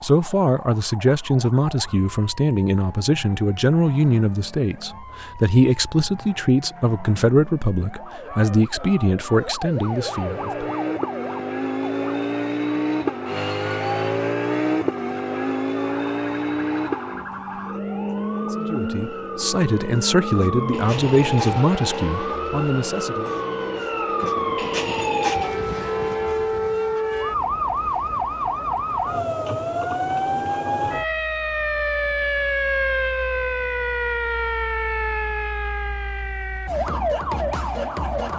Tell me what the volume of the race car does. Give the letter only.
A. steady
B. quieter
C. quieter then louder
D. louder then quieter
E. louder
B.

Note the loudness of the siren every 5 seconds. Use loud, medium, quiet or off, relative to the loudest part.
quiet, quiet, medium, medium, loud, loud, loud, loud.